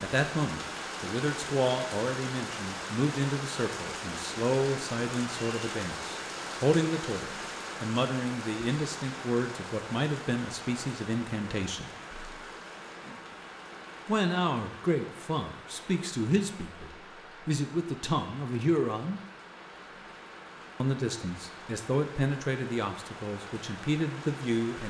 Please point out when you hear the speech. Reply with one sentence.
The speech can be heard from 0.0 to 11.9 s, from 14.1 to 19.2 s and from 20.8 to 24.8 s.